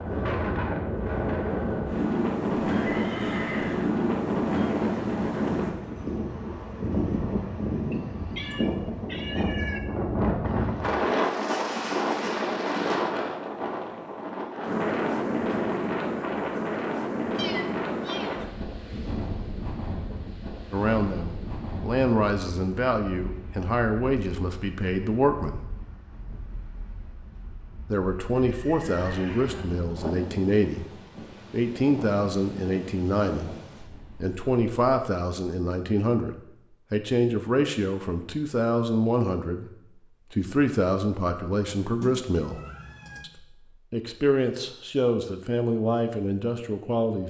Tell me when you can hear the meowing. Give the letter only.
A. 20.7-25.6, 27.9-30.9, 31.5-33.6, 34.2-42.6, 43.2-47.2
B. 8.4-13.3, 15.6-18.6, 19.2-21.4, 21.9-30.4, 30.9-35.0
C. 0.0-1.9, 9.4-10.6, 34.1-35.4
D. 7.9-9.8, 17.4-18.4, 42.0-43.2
D.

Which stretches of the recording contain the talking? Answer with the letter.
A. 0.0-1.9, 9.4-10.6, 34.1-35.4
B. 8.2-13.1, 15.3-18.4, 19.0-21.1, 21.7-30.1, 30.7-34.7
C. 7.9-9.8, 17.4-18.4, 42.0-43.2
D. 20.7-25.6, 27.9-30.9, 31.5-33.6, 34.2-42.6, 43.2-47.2
D.